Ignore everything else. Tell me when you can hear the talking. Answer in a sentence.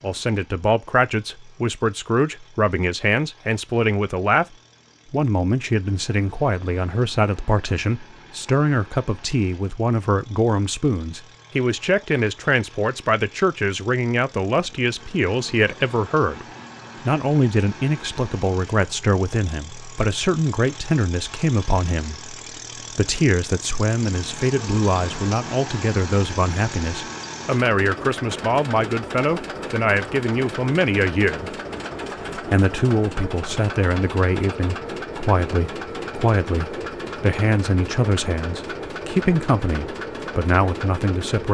The talking can be heard from 0.0 to 4.5 s, from 5.1 to 16.4 s, from 17.1 to 22.3 s, from 22.9 to 31.5 s and from 32.4 to 41.4 s.